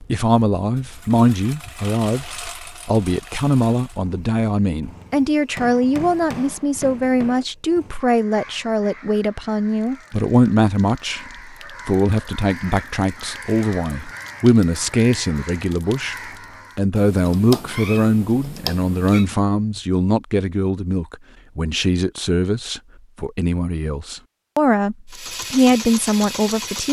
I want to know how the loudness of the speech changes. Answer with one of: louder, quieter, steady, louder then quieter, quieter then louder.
steady.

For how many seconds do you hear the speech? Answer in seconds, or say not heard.
26 s.